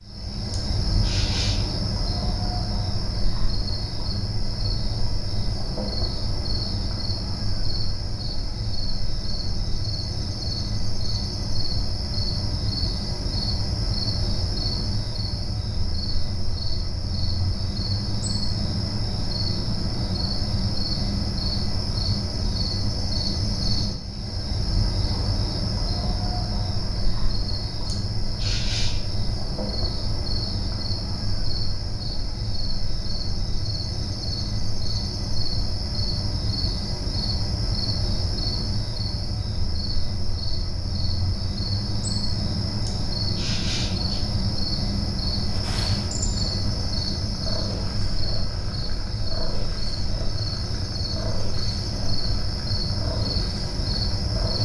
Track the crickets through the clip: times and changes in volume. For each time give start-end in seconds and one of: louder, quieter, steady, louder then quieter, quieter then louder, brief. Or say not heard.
0.0-54.5 steady.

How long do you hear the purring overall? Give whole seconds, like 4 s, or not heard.
9 s.